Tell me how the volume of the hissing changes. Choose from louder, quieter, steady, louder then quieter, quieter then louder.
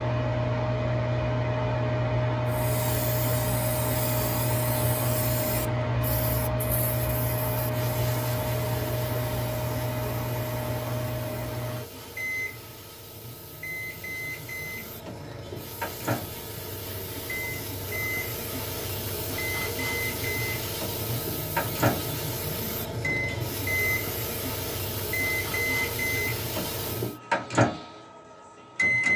louder.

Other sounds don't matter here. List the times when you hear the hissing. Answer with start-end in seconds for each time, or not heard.
2.5-27.2.